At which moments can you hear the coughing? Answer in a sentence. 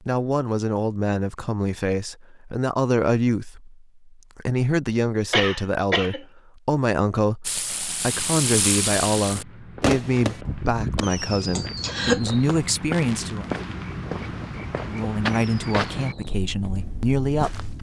You can hear the coughing from 5.3 to 6.2 s and from 11.5 to 12.2 s.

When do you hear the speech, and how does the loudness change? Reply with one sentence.
The speech can be heard from 0.0 to 13.5 s, at a steady volume; and briefly from 14.8 to 17.6 s.